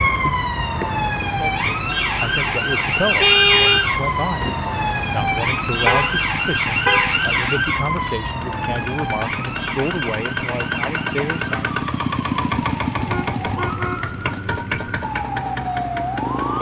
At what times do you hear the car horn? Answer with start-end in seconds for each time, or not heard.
3.2-3.9, 5.8-7.5, 13.0-15.0.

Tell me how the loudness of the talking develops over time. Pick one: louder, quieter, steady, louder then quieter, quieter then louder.
steady.